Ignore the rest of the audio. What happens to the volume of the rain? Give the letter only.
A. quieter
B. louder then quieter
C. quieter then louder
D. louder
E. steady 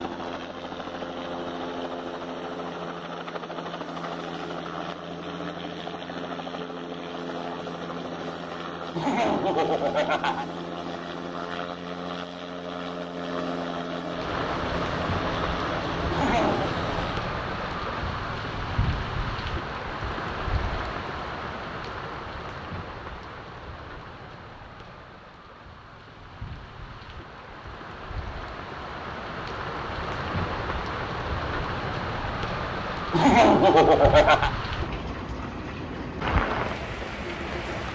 C.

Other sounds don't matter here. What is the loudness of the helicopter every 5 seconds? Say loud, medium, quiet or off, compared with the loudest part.
loud, loud, loud, loud, off, off, off, off.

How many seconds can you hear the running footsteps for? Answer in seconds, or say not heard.
not heard.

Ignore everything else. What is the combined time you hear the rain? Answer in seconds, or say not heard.
24 s.